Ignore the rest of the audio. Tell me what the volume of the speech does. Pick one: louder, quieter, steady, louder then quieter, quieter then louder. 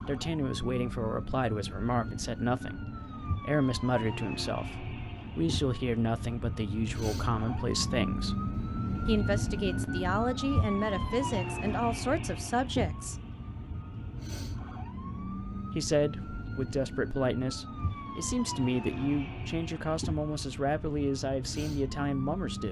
steady.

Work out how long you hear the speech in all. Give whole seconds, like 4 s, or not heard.
19 s.